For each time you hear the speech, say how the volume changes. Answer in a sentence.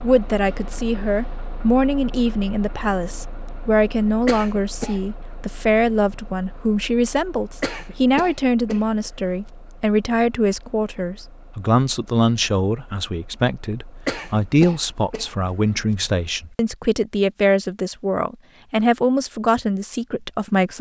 You can hear the speech from 0.0 to 20.7 s, at a steady volume.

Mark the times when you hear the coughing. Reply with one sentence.
The coughing can be heard from 4.2 to 5.0 s, from 7.6 to 9.1 s and from 14.1 to 15.5 s.